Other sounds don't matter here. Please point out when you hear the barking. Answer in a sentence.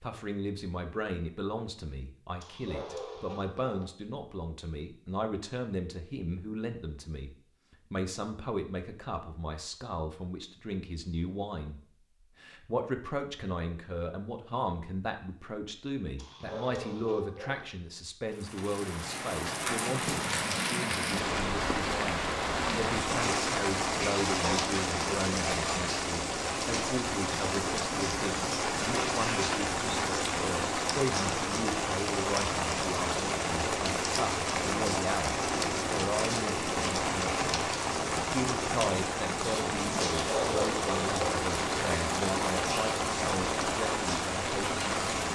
The barking can be heard from 2.4 to 3.9 s, from 16.1 to 17.6 s and from 40.2 to 41.5 s.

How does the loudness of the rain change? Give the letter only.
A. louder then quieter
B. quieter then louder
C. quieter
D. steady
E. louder
D.